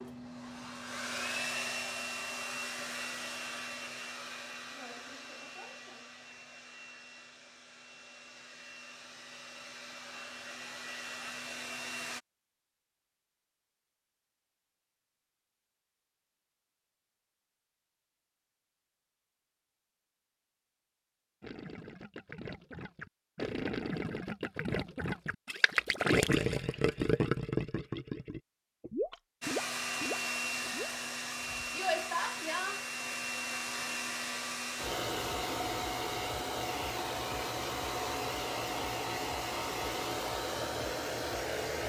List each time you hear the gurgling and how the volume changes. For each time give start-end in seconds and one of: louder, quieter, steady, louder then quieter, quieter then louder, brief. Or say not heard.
21.4-30.9 louder then quieter.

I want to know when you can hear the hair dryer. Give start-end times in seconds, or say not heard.
0.0-12.2, 29.4-41.8.